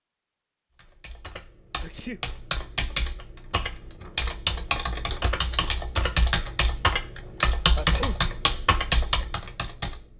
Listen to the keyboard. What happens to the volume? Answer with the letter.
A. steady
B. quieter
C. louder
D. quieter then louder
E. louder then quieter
C.